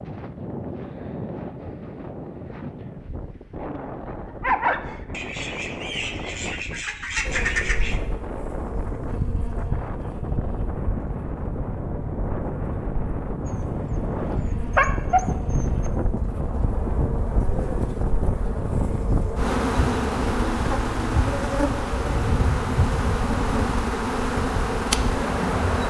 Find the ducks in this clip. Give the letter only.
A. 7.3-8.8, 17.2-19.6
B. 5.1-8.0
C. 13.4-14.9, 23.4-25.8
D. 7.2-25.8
B.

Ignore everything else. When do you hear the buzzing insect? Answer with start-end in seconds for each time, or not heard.
7.2-25.8.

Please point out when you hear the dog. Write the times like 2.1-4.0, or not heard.
3.5-5.0, 13.4-15.9.